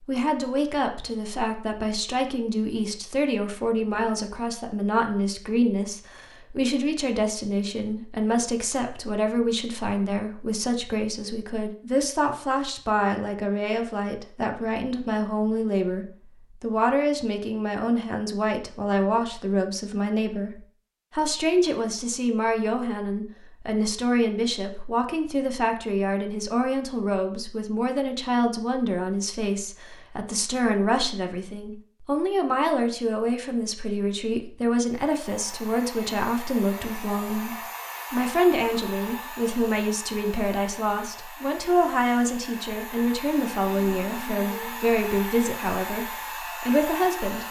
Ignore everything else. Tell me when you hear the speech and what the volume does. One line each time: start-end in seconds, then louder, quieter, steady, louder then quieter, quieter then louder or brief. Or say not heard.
0.0-47.4 steady.